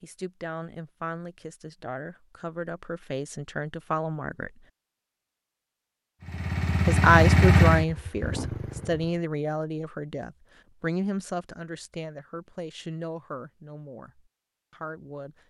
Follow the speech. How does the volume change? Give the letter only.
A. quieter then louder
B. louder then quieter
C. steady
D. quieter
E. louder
B.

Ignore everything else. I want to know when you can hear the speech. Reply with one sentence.
You can hear the speech from 0.0 to 4.6 s and from 6.8 to 15.3 s.